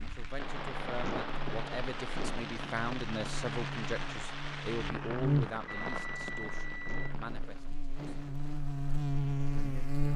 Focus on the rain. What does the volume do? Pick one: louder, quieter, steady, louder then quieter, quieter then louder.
quieter.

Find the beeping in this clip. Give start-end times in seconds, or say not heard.
5.7-7.2.